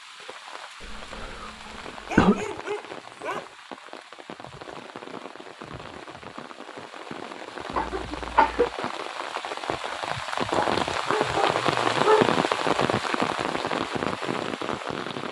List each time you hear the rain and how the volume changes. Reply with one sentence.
You can hear the rain from 0.0 to 15.2 s, getting louder.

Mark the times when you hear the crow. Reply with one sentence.
You can't hear the crow here.